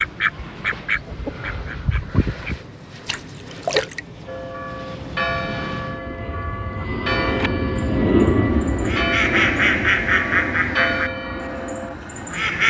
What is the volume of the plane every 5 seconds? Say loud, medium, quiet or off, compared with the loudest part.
quiet, loud, medium.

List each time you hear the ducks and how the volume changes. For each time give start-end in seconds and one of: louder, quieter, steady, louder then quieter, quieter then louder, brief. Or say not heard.
0.0-2.6 brief
7.2-12.6 louder then quieter.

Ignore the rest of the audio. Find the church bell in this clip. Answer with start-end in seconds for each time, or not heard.
4.2-11.9.